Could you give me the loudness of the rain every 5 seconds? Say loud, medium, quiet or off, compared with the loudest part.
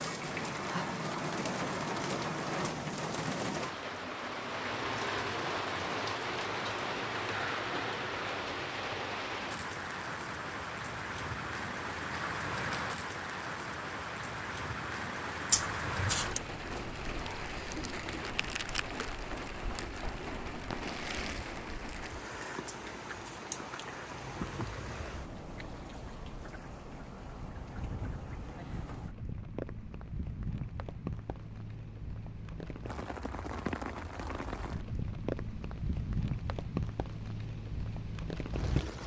loud, loud, loud, loud, medium, medium, medium, loud.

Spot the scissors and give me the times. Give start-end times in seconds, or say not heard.
15.5-16.4, 22.6-23.9.